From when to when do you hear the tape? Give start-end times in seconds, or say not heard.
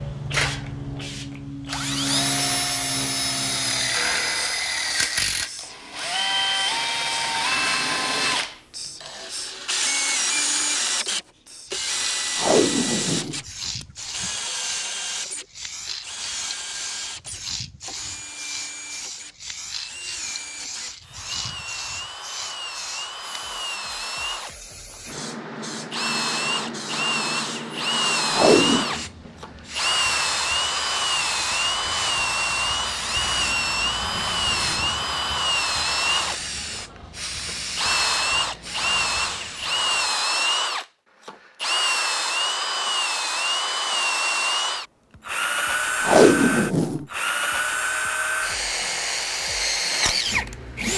12.3-14.3, 28.3-28.9, 46.0-47.0.